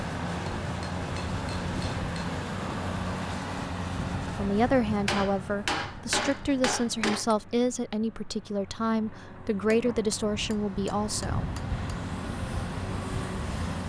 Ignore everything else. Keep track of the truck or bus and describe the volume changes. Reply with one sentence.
The loudness of the truck or bus goes down, then up.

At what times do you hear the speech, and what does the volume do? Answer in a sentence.
The speech can be heard from 4.3 to 11.4 s, at a steady volume.